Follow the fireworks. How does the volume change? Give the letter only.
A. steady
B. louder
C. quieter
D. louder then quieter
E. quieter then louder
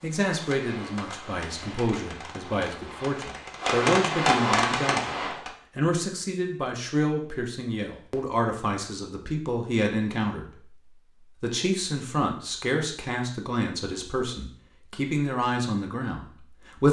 B.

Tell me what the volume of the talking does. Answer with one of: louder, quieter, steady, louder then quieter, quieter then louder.
steady.